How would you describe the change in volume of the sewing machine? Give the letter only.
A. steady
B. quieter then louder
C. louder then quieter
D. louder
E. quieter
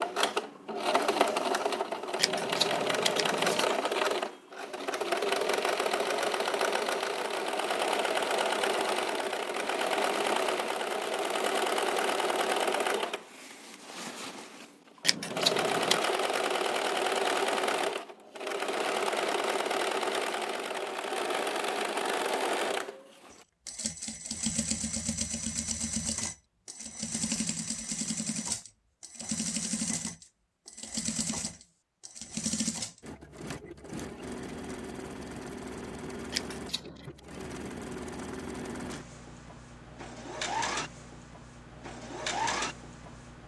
E.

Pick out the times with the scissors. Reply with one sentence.
The scissors can be heard from 2.1 to 3.6 s, from 15.0 to 16.1 s and from 36.3 to 37.2 s.